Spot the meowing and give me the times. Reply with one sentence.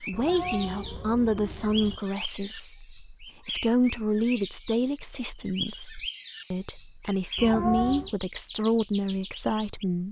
You can hear the meowing from 0.1 to 2.0 s and from 7.3 to 8.2 s.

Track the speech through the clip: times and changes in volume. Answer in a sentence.
You can hear the speech from 0.0 to 10.0 s, at a steady volume.